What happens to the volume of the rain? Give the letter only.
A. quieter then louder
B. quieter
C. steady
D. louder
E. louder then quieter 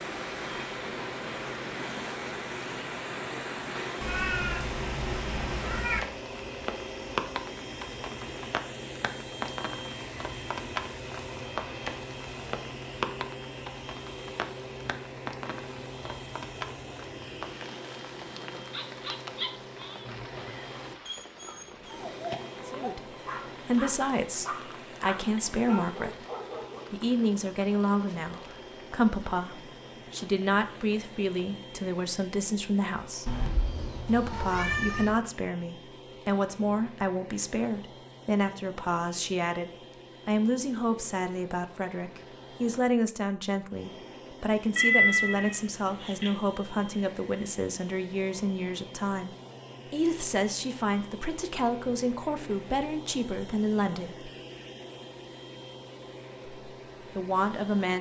B.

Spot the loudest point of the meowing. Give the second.
45 s.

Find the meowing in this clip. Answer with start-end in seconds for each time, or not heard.
4.0-6.0, 33.2-35.1, 44.8-46.3.